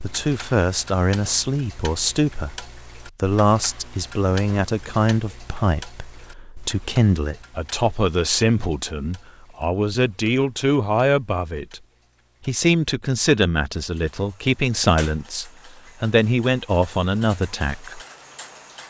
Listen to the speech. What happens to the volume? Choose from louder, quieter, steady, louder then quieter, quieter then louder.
steady.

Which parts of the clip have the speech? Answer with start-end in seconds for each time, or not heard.
0.0-11.8, 12.4-18.0.